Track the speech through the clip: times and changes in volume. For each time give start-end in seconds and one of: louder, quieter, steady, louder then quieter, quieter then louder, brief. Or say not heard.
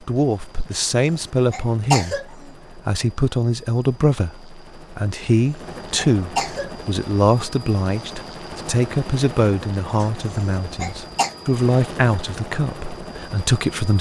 0.1-13.9 steady.